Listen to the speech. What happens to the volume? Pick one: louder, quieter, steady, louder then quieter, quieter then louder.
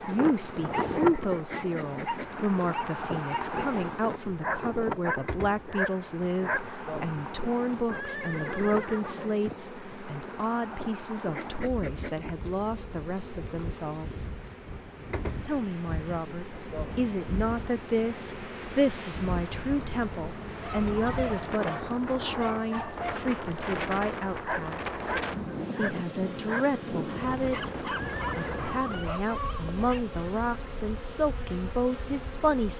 steady.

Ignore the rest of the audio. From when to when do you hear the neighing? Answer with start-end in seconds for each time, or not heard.
7.9-9.3, 27.9-28.7.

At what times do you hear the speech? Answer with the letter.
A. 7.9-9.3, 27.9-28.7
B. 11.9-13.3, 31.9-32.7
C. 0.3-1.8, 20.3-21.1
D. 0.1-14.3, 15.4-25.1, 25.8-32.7
D.